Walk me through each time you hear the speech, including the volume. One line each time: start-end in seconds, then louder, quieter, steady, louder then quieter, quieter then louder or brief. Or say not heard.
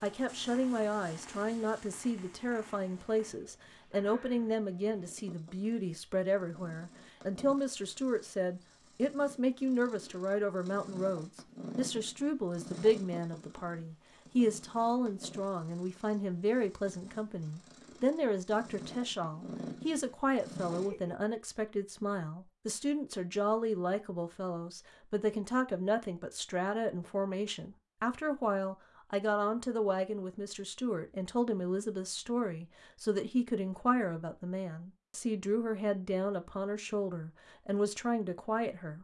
0.0-38.9 steady.